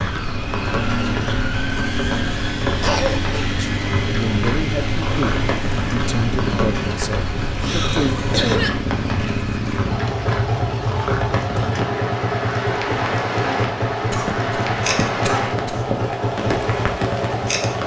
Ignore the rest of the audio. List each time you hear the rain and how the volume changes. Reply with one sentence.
The rain can be heard from 0.0 to 17.8 s, at a steady volume.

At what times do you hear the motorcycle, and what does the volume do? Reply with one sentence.
You can hear the motorcycle from 0.0 to 17.8 s, at a steady volume.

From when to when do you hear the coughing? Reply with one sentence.
The coughing can be heard from 2.8 to 3.5 s, from 7.6 to 8.8 s and from 14.1 to 15.9 s.